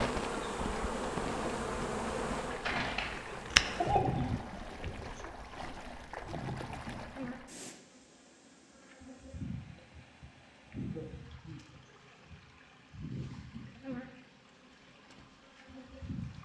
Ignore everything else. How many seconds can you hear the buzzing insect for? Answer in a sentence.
You can hear the buzzing insect for 16 seconds altogether.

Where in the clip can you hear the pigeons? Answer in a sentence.
You can hear the pigeons from 2.5 to 4.3 s.